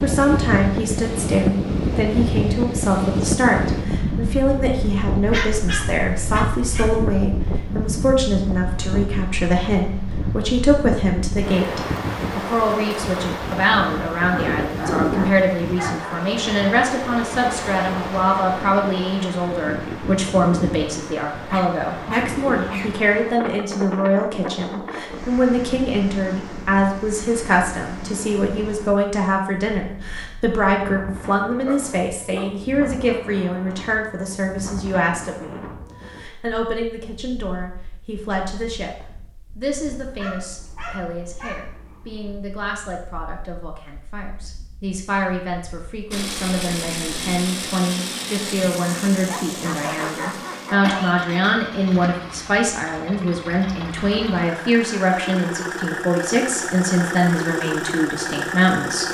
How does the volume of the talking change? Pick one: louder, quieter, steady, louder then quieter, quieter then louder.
quieter then louder.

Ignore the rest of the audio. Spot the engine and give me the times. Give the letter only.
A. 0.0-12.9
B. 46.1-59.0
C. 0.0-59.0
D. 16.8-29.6
B.